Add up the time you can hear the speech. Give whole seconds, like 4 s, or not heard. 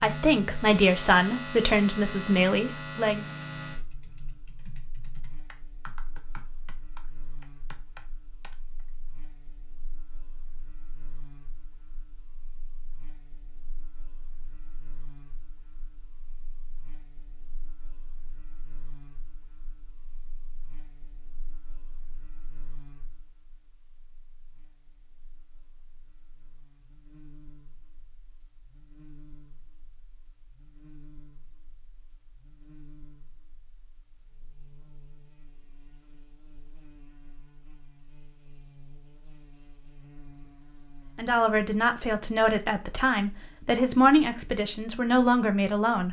8 s.